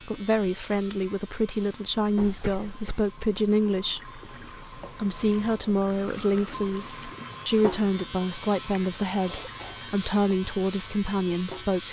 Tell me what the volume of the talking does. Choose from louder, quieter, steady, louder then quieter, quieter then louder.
steady.